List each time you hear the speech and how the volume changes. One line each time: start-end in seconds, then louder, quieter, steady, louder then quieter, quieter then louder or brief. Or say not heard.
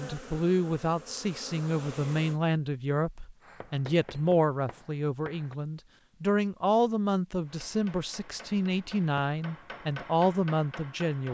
0.0-11.2 steady.